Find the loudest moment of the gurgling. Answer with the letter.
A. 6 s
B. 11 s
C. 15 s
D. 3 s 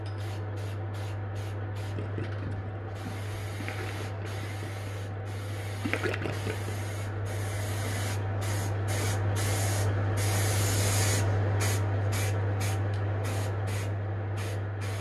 A.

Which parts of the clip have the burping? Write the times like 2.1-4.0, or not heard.
not heard.